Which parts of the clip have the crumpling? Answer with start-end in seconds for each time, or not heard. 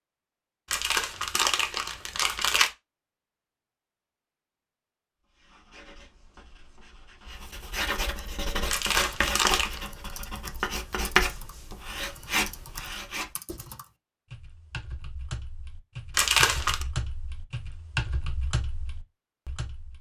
0.7-2.7, 8.7-9.8, 16.1-16.9.